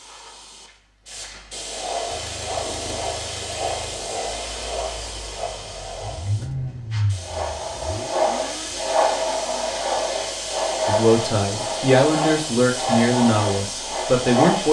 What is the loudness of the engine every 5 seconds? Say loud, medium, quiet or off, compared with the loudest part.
medium, loud, off.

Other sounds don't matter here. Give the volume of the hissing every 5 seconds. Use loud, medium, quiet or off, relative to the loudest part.
medium, loud, loud.